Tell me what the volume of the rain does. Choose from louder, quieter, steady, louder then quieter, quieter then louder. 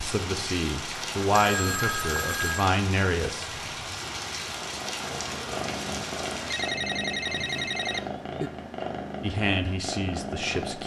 steady.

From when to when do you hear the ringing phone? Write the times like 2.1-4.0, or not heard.
0.8-2.7, 6.5-8.5.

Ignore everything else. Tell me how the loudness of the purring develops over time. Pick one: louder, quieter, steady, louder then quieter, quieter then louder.
steady.